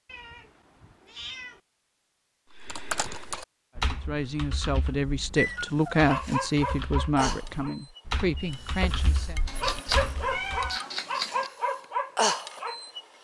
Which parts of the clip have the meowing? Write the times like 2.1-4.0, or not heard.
0.1-1.6, 4.8-6.1, 9.4-11.5.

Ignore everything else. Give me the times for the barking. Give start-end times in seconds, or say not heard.
5.3-13.0.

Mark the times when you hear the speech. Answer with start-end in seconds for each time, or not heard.
3.8-9.4.